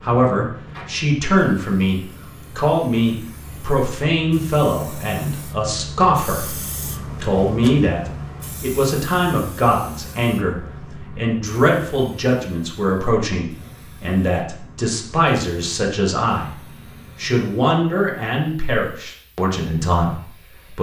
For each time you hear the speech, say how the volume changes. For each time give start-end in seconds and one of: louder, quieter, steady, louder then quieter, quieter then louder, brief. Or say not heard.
0.0-20.7 steady.